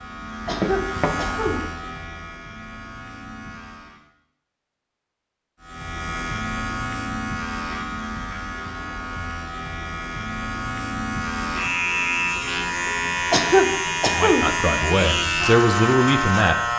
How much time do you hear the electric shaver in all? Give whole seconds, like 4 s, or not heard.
15 s.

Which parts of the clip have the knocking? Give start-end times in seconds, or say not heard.
0.6-1.1.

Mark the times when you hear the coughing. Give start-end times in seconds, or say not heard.
0.5-1.6, 13.3-14.5.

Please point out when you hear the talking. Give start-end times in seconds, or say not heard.
14.1-16.6.